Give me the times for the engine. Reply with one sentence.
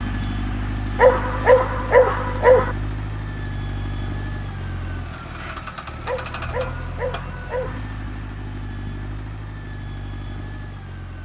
You can hear the engine from 0.0 to 11.2 s.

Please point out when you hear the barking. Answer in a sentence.
You can hear the barking from 0.9 to 2.8 s and from 6.0 to 7.8 s.